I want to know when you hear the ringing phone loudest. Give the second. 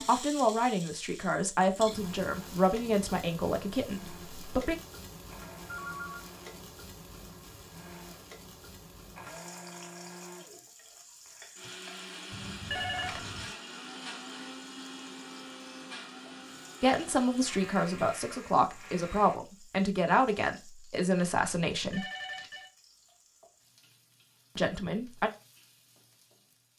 13 s.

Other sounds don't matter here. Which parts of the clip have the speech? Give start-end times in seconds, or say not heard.
0.1-4.8, 16.8-22.1, 24.6-25.3.